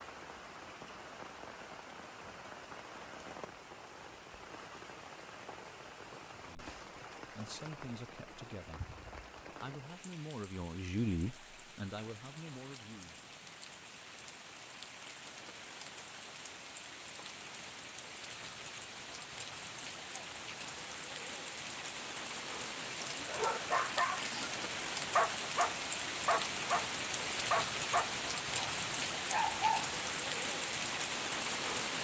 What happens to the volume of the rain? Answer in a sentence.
The volume of the rain goes up.